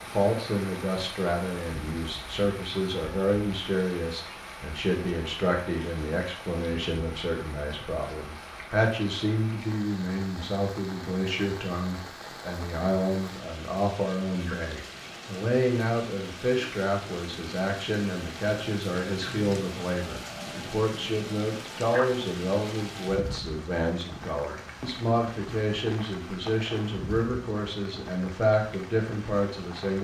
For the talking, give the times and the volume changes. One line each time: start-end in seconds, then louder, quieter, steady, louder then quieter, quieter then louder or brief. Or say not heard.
0.0-29.9 steady.